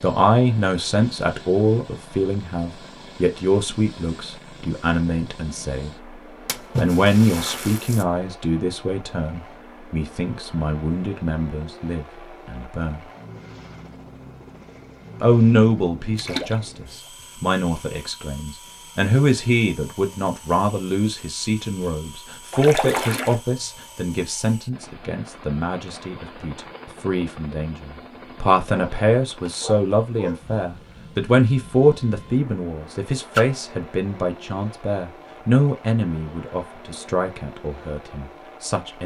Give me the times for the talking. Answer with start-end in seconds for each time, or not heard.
0.0-6.0, 6.8-13.1, 15.2-39.0.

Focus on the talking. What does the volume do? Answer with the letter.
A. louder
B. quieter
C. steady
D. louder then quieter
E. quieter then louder
C.